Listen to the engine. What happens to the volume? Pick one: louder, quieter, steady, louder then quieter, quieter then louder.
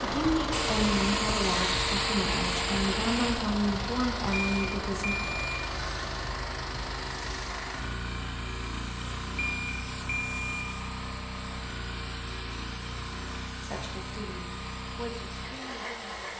quieter.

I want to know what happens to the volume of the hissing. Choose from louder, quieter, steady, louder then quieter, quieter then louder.
quieter.